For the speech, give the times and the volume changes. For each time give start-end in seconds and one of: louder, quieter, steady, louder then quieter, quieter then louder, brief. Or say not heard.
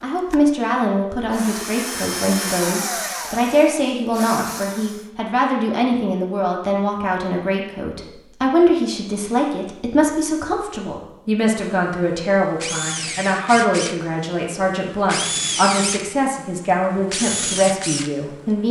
0.0-18.6 steady.